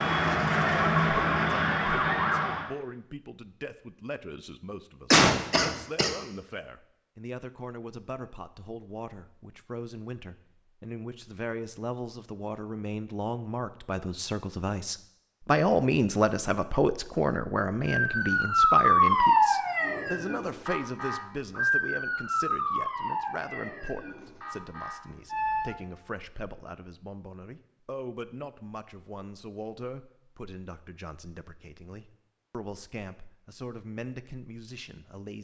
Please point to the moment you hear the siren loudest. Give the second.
19 s.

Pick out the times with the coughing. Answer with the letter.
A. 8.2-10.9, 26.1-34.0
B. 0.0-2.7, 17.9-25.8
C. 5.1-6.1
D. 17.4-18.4
C.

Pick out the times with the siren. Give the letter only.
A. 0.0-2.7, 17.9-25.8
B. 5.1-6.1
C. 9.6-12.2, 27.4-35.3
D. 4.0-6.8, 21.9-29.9
A.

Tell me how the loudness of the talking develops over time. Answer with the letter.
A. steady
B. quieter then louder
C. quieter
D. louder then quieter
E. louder
D.